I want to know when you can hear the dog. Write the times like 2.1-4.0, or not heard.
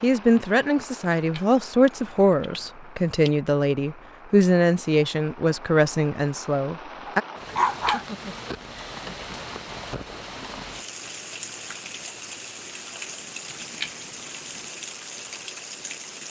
7.0-8.1.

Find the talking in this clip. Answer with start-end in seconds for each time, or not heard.
0.0-7.2.